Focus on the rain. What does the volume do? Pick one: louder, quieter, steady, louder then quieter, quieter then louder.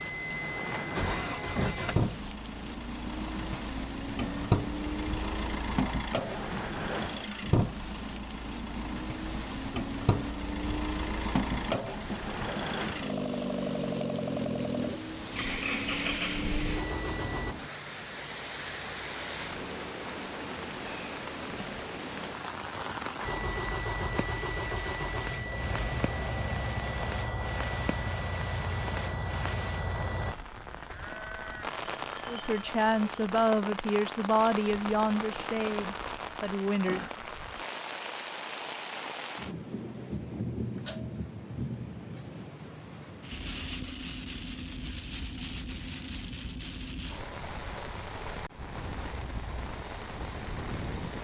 steady.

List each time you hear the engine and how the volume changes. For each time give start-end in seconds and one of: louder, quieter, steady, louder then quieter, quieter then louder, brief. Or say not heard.
0.0-17.6 steady
23.2-30.4 steady.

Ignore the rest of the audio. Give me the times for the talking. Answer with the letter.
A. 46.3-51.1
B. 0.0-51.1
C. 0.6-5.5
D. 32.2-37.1
D.